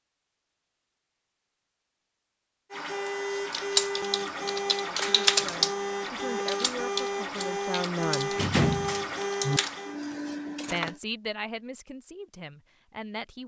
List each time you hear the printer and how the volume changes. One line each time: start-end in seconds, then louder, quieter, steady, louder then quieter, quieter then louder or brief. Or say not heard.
2.7-11.0 steady.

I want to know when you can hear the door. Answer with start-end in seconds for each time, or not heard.
8.3-9.6.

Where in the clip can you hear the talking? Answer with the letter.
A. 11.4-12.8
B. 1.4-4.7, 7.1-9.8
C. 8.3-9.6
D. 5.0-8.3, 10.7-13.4
D.